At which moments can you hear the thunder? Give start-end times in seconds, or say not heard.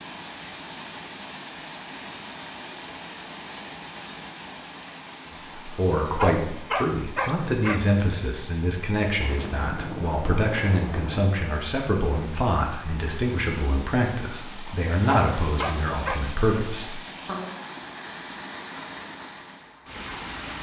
9.2-11.2.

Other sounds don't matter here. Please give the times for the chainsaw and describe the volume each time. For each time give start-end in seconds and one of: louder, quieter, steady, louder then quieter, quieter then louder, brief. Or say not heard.
not heard.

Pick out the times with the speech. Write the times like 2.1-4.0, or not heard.
5.6-17.5.